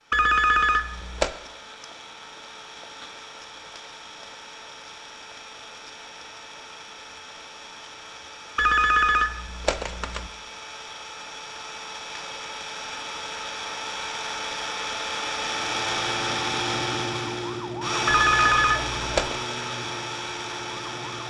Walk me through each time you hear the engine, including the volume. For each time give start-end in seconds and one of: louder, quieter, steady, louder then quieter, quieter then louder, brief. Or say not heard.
0.0-21.2 louder.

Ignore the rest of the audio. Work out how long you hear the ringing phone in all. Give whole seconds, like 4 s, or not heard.
4 s.